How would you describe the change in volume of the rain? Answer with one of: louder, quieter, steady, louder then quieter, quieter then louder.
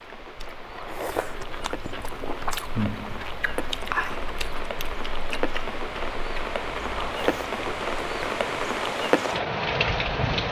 louder.